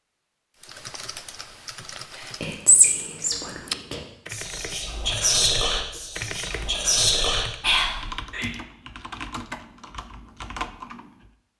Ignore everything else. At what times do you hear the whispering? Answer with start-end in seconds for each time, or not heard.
2.4-8.5.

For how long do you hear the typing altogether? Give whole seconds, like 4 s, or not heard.
11 s.